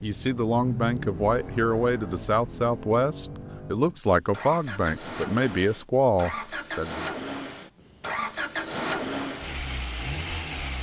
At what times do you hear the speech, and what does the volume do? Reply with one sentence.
The speech can be heard from 0.0 to 7.1 s, at a steady volume.